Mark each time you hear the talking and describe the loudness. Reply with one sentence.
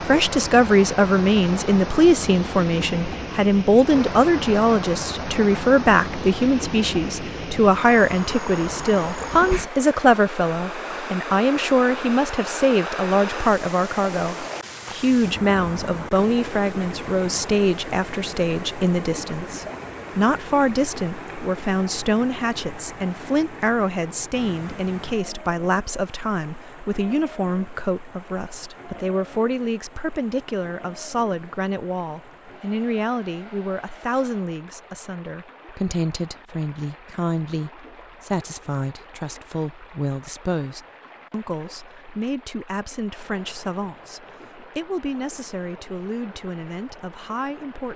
You can hear the talking from 0.1 to 47.9 s, getting quieter.